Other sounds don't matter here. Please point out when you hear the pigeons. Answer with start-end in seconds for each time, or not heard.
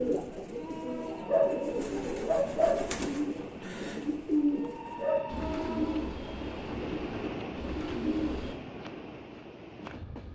0.0-8.6.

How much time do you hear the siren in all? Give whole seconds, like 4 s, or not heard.
not heard.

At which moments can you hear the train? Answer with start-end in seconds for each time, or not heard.
0.0-10.2.